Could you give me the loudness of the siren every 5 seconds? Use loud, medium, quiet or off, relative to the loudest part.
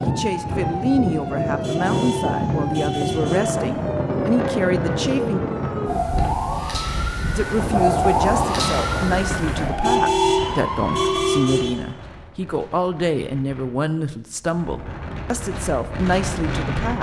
medium, loud, loud, off.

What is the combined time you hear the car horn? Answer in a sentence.
The car horn can be heard for 4 seconds in total.